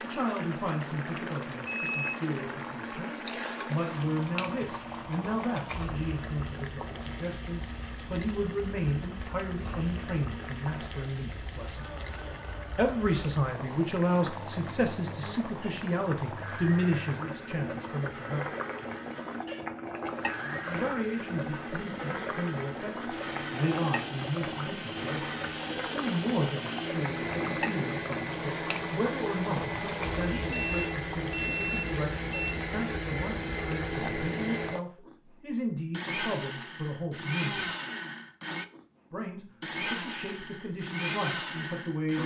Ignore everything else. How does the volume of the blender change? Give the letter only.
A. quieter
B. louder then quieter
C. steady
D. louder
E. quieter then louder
D.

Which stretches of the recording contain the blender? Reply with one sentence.
The blender can be heard from 0.0 to 42.2 s.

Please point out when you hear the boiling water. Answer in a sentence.
The boiling water can be heard from 0.0 to 34.3 s.